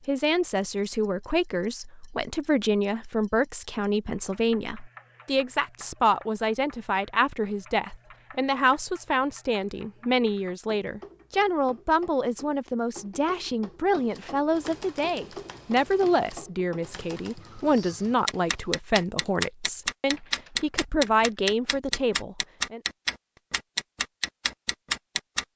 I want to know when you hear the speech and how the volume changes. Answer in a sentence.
The speech can be heard from 0.1 to 22.8 s, at a steady volume.